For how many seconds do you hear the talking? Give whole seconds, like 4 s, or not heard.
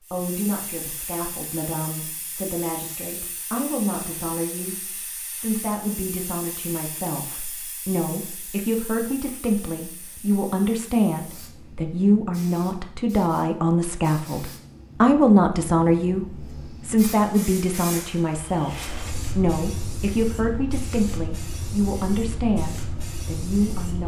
24 s.